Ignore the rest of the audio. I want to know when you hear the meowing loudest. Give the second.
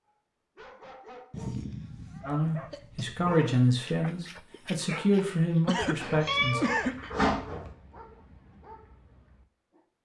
7 s.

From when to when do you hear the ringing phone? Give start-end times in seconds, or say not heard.
not heard.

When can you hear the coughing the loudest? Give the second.
7 s.